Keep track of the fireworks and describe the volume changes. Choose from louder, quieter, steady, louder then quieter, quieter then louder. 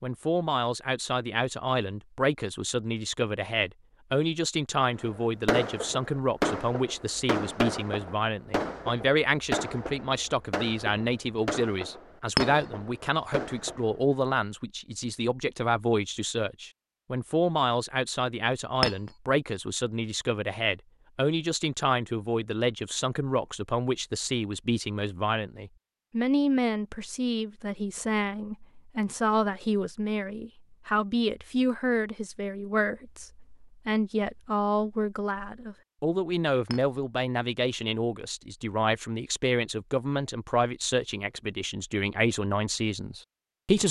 quieter.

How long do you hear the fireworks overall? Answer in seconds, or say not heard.
9 s.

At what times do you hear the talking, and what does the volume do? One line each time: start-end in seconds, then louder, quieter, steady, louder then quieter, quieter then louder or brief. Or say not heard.
0.0-43.8 steady.